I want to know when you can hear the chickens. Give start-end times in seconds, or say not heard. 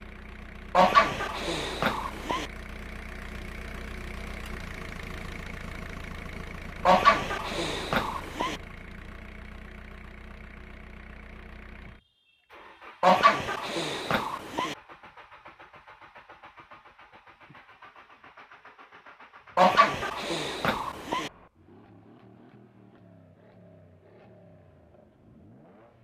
0.8-2.5, 6.8-8.6, 13.0-14.8, 19.6-21.3.